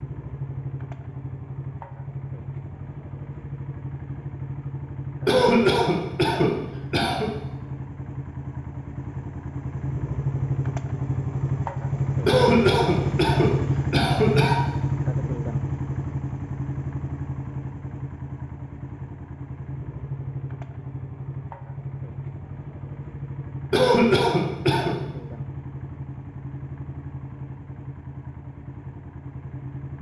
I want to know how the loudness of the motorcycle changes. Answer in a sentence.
The volume of the motorcycle goes up, then down.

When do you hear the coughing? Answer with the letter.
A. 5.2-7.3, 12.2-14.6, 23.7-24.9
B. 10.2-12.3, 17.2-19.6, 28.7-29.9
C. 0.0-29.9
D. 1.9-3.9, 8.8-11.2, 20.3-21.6
A.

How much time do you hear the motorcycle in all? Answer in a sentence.
You can hear the motorcycle for 30 seconds altogether.